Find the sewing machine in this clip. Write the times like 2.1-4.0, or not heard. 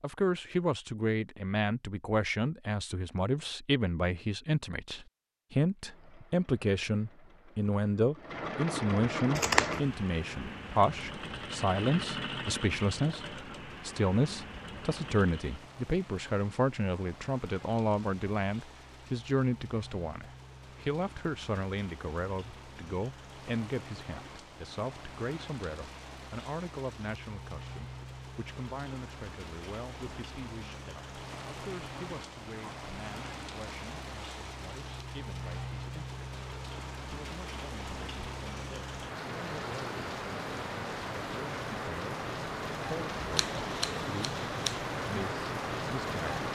5.7-15.7.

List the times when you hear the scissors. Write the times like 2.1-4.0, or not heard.
9.3-10.0, 43.4-44.8.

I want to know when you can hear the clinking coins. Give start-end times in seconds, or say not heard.
not heard.